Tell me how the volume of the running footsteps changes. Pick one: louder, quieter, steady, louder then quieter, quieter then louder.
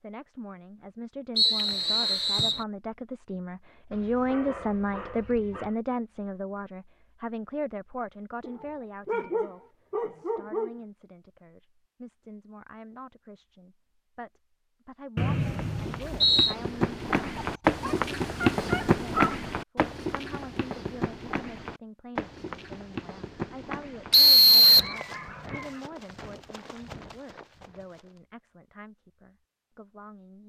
quieter.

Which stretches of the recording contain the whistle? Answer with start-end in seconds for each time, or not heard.
1.4-2.6, 15.2-16.6, 24.1-24.9.